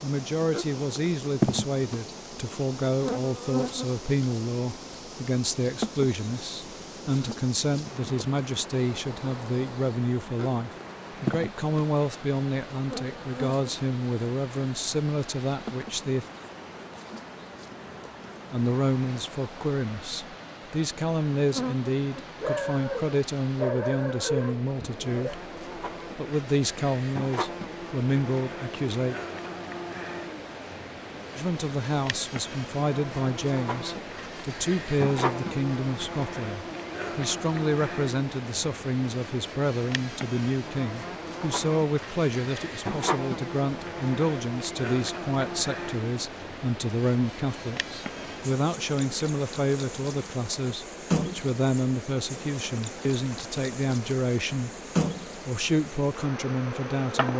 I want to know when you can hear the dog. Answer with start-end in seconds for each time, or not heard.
22.4-25.4.